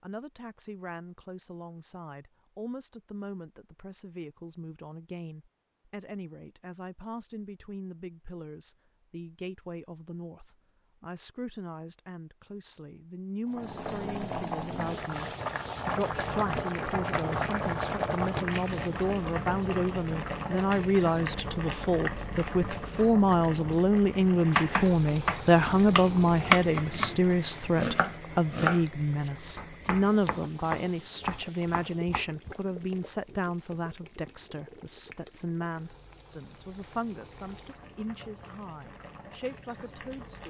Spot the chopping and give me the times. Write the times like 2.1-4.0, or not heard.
24.4-32.5.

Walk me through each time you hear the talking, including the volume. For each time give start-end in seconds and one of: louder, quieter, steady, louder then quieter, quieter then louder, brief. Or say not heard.
0.0-40.4 louder then quieter.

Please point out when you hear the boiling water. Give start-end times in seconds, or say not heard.
13.4-40.4.